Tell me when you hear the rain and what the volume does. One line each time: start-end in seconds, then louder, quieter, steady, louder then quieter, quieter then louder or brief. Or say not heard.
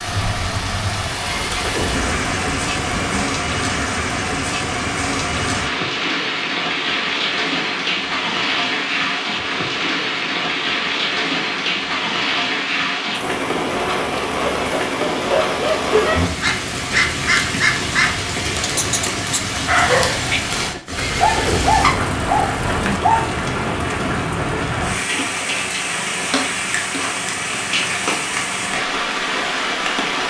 0.0-30.2 steady.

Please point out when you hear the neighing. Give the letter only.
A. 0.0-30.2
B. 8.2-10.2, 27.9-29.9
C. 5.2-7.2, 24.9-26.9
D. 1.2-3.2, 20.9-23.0
D.